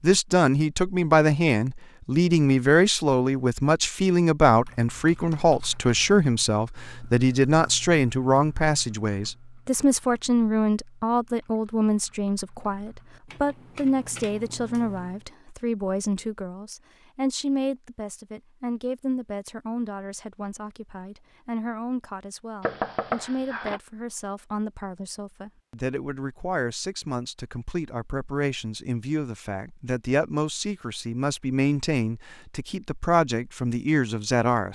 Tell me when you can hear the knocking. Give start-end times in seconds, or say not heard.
22.6-23.8.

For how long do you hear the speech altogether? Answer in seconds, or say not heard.
35 s.